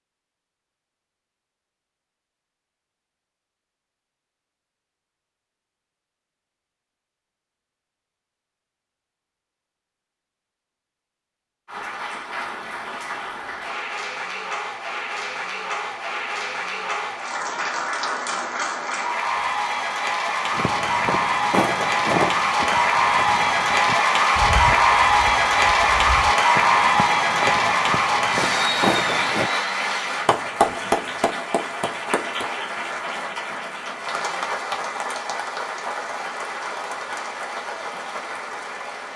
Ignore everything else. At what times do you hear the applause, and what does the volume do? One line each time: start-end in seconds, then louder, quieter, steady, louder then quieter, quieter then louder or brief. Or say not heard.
11.7-39.1 louder then quieter.